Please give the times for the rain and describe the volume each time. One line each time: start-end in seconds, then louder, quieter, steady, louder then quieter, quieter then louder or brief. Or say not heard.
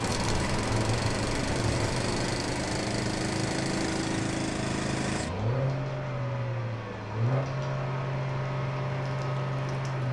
0.0-10.0 quieter.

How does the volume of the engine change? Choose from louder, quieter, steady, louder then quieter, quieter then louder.
steady.